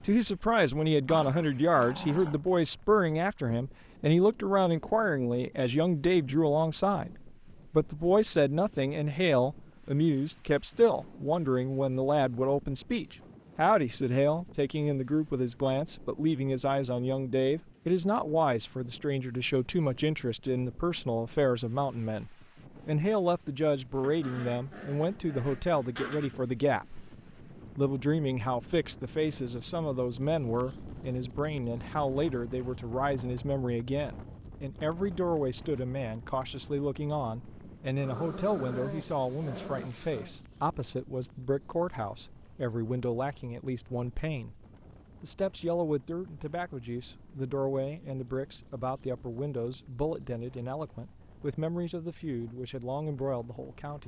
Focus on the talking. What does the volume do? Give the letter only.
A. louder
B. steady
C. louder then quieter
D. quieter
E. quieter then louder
D.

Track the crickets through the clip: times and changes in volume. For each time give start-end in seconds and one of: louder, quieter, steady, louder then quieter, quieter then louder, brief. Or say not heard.
not heard.